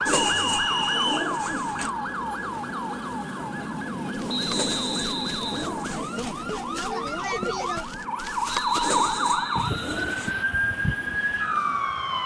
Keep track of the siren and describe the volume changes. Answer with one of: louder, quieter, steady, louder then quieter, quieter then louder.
quieter then louder.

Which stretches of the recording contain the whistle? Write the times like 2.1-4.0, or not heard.
0.3-1.3, 4.2-5.8, 8.4-10.4.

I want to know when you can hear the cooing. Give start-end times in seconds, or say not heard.
0.1-1.9, 4.5-6.2, 8.8-10.3.